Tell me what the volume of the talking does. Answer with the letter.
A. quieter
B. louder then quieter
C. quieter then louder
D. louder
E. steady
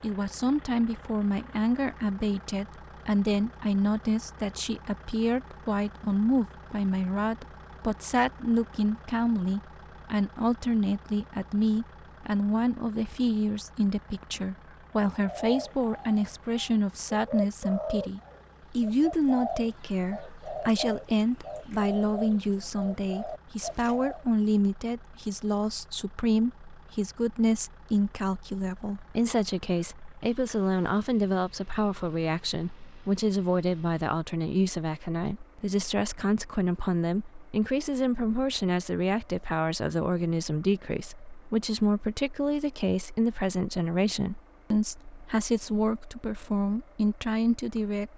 E.